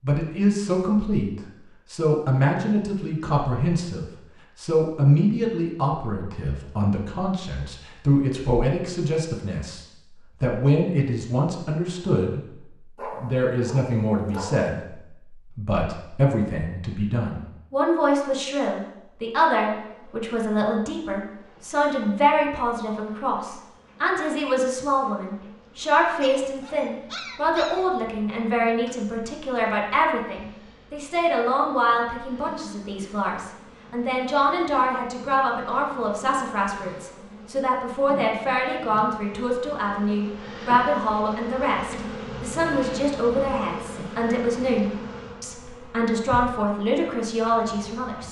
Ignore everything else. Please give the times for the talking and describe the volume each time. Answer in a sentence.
You can hear the talking from 0.0 to 48.2 s, at a steady volume.